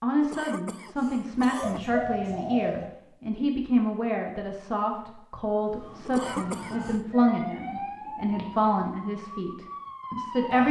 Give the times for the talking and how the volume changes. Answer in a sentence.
The talking can be heard from 0.0 to 10.6 s, at a steady volume.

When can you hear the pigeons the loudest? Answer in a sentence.
The loudest moment of the pigeons is at 2 seconds.